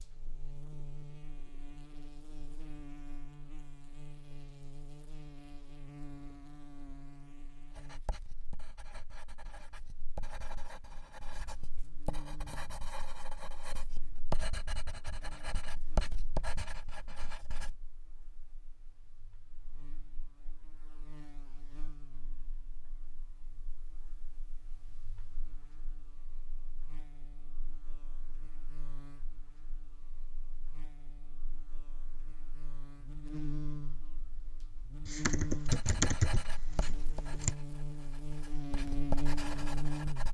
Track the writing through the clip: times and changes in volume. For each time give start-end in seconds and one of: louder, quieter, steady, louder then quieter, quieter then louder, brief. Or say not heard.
7.7-17.8 louder
35.6-40.2 quieter then louder.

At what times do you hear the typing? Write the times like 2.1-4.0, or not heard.
35.0-37.5.